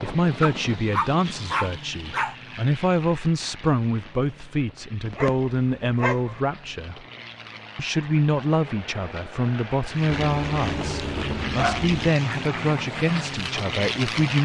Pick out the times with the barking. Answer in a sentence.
The barking can be heard from 0.4 to 2.4 s, from 5.0 to 6.4 s and from 10.1 to 12.1 s.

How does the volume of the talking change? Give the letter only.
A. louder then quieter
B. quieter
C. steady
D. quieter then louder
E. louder
C.